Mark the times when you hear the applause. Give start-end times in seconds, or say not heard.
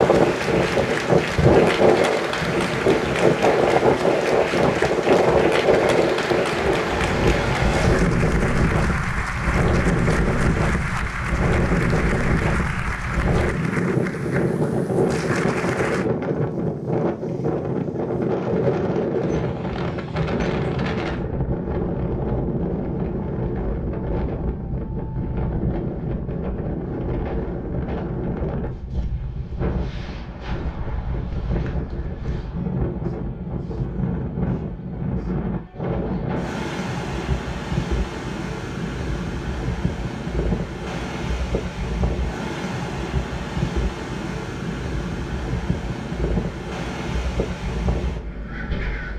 0.0-16.1.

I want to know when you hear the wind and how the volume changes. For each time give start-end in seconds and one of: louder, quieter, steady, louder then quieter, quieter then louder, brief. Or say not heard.
0.0-49.1 quieter.